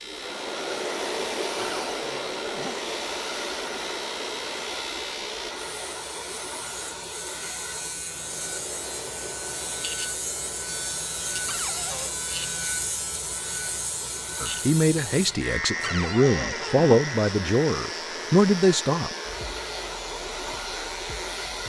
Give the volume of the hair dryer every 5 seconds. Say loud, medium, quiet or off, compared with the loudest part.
loud, medium, medium, medium, loud.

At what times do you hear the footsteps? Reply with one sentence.
The footsteps can't be heard in this clip.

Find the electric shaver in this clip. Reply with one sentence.
You can hear the electric shaver from 0.0 to 21.6 s.